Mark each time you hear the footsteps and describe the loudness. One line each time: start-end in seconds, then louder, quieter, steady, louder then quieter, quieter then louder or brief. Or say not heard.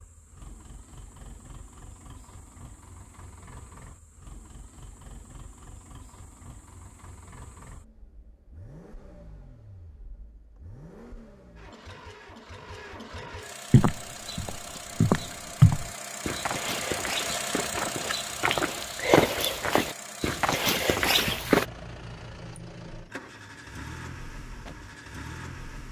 13.7-21.6 quieter then louder.